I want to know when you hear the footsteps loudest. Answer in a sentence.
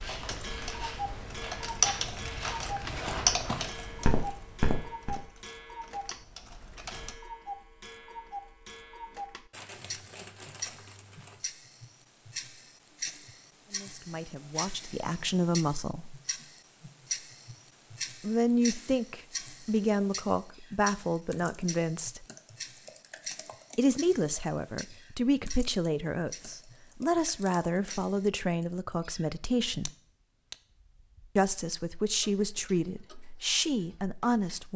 The volume of the footsteps peaks at 5 seconds.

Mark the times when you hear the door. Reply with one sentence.
You can't hear the door here.